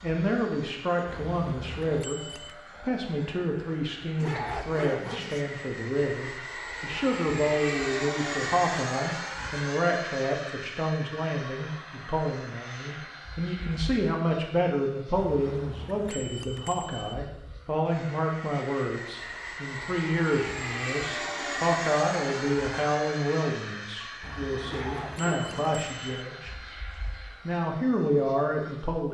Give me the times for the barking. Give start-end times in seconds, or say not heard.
4.2-5.4, 24.6-25.9.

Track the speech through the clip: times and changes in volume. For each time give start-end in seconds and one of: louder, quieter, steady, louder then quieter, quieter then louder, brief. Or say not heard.
0.0-26.6 steady
27.4-29.0 brief.